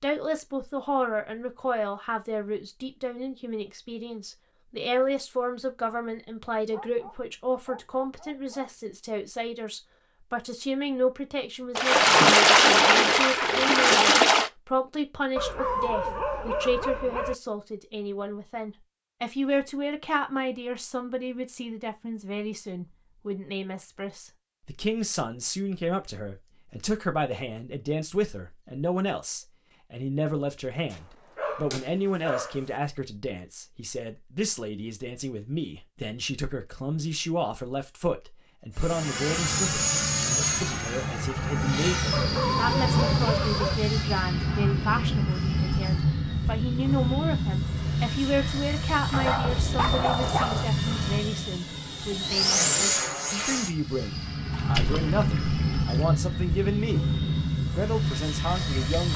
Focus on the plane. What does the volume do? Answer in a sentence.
The loudness of the plane stays about the same.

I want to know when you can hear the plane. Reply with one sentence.
The plane can be heard from 38.8 to 59.1 s.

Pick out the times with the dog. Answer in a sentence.
The dog can be heard from 6.7 to 8.7 s, from 15.3 to 17.4 s, from 30.9 to 32.6 s, from 42.1 to 43.8 s and from 49.1 to 50.7 s.